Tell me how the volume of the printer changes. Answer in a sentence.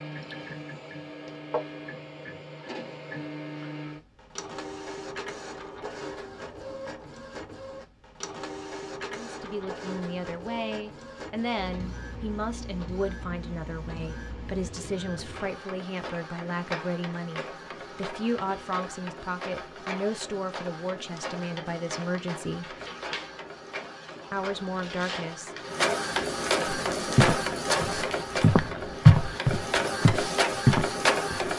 The volume of the printer goes up.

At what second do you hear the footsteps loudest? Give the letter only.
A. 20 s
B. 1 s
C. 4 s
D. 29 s
D.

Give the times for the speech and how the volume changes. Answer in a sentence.
The speech can be heard from 9.2 to 22.8 s, at a steady volume; and briefly from 24.3 to 25.6 s.